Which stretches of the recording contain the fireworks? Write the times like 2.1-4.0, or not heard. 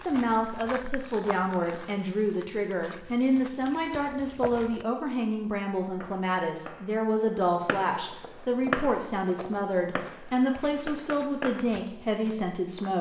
6.0-11.8.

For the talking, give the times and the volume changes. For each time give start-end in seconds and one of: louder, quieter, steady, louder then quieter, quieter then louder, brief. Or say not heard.
0.1-12.9 steady.